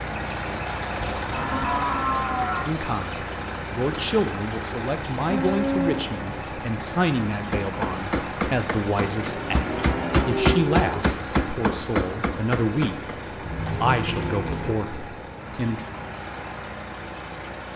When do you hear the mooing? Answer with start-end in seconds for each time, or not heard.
1.0-2.7, 5.2-6.5, 9.2-11.0, 13.4-14.8.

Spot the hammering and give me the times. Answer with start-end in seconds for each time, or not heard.
7.5-13.0.